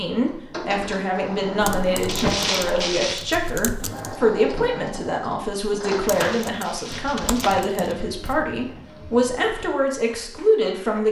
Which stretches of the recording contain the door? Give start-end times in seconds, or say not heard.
1.3-2.5, 7.0-7.7.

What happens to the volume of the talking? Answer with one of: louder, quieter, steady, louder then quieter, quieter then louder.
steady.